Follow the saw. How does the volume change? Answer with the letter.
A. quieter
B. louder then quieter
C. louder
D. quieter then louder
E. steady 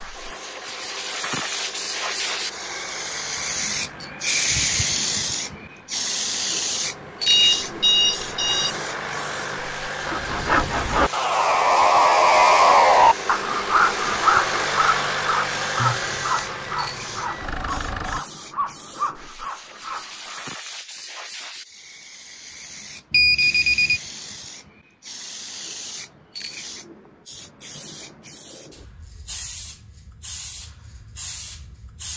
A.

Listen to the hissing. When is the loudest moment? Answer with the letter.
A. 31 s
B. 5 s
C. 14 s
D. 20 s
B.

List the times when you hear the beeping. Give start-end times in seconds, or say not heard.
7.2-8.8, 15.8-17.4, 23.1-24.0.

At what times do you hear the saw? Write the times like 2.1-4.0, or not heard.
10.0-20.5.